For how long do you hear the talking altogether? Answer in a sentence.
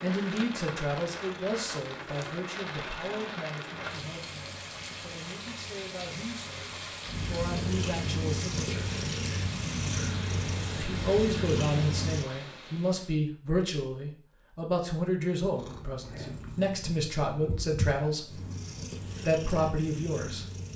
The talking can be heard for 18 seconds in total.